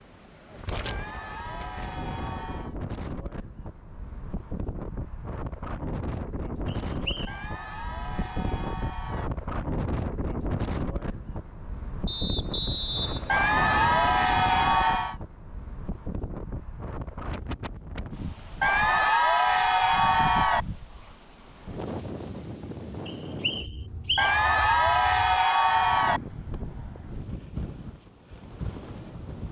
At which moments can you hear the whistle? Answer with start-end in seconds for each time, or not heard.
6.7-7.3, 12.1-14.1, 23.1-24.4.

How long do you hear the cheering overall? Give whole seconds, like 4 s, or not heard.
10 s.